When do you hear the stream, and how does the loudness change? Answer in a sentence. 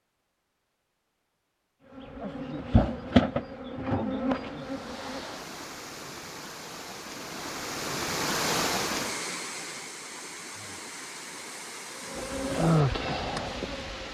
You can hear the stream from 4.5 to 14.0 s, getting louder then quieter.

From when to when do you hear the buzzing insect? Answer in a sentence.
The buzzing insect can be heard from 1.9 to 5.4 s and from 11.9 to 14.0 s.